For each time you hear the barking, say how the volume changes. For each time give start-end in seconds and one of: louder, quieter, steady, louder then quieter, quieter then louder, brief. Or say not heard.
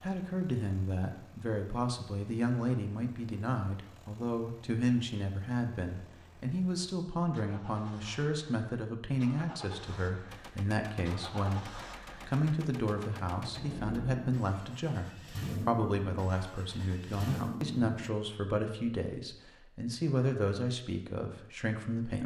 not heard.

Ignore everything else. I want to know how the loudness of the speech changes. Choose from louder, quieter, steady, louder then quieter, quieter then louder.
steady.